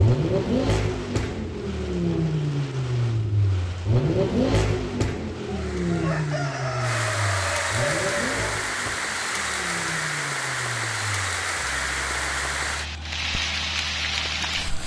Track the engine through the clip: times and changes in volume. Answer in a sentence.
You can hear the engine from 0.0 to 14.8 s, getting quieter.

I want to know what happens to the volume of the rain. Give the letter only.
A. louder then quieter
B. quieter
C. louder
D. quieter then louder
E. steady
C.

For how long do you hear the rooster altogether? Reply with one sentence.
You can hear the rooster for 3 seconds altogether.